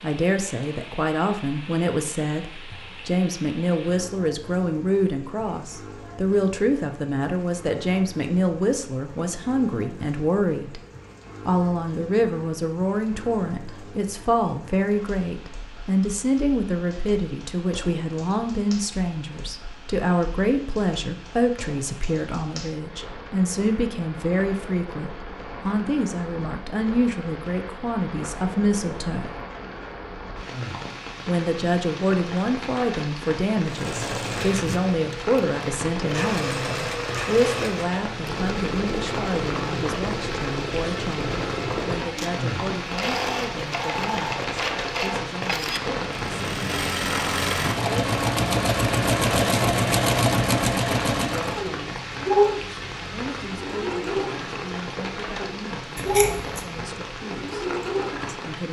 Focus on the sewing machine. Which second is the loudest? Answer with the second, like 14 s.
50 s.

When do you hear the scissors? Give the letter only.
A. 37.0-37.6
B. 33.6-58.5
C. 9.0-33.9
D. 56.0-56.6
D.